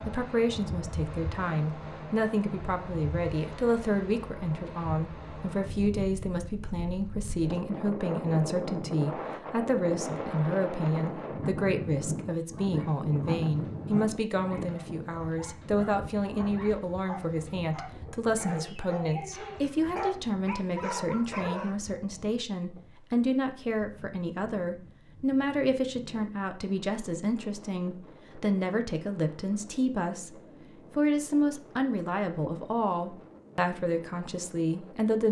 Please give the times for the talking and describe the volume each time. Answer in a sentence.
The talking can be heard from 0.0 to 35.2 s, at a steady volume.